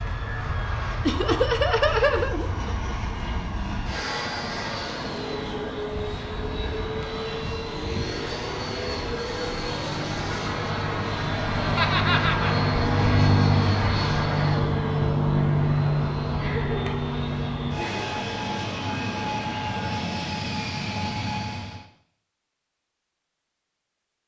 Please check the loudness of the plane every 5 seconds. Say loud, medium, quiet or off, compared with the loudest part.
medium, medium, loud, loud, medium.